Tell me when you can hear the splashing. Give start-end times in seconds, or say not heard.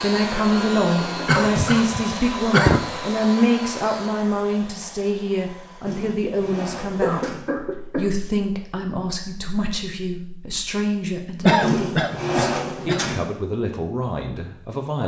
not heard.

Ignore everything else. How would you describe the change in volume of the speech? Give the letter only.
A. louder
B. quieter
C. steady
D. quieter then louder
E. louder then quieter
B.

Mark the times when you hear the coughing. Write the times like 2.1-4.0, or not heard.
1.2-2.9, 7.0-8.1, 11.4-13.0.